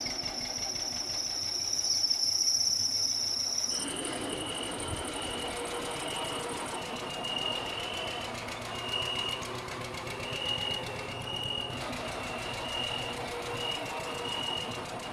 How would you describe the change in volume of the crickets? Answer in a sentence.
The volume of the crickets goes down.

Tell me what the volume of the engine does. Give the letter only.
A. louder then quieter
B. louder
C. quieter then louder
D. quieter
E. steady
B.